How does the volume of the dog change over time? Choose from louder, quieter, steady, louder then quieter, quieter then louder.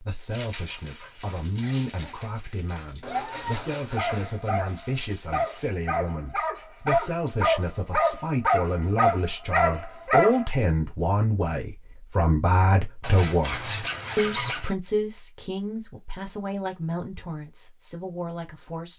louder.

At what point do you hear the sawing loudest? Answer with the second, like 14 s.
14 s.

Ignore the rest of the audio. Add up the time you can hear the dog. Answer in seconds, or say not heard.
10 s.